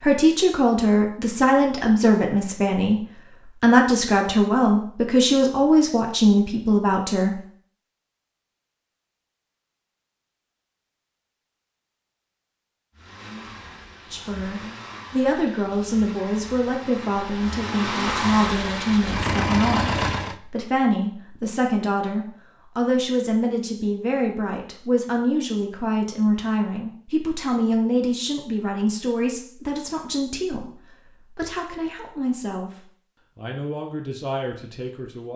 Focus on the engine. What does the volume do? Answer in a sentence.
The volume of the engine goes up.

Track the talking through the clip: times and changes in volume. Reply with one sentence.
You can hear the talking from 0.0 to 7.4 s, at a steady volume; and from 14.1 to 35.3 s, getting quieter.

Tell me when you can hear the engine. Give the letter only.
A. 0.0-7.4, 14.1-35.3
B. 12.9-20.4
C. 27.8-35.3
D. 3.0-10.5
B.